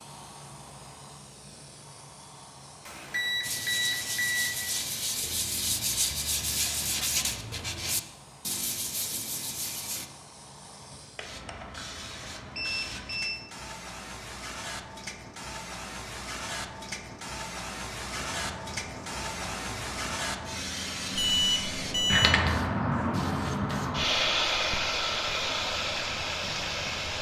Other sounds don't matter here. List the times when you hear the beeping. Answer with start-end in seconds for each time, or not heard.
2.9-4.5, 11.2-11.8, 12.6-13.3, 21.1-22.4.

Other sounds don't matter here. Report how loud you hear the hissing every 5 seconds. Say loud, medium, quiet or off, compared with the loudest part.
quiet, quiet, quiet, medium, loud, loud.